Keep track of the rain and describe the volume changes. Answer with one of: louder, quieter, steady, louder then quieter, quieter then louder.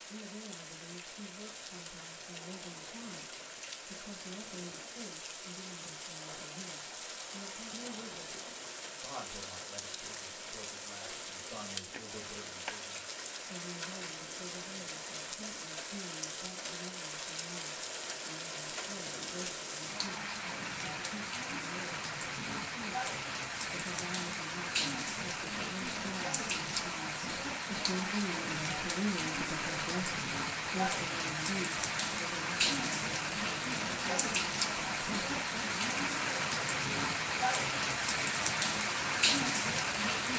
louder.